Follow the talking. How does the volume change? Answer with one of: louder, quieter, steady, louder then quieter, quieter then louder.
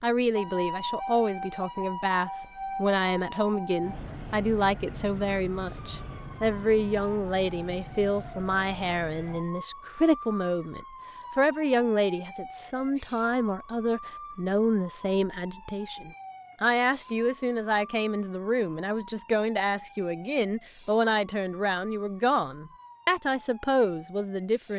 steady.